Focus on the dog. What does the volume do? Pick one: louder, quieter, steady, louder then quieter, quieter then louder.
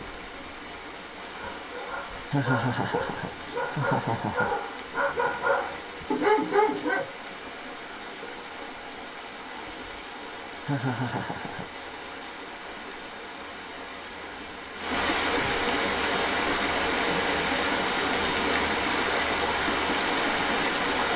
louder.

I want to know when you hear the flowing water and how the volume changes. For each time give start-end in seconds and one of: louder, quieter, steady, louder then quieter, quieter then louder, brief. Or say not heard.
0.0-21.1 louder.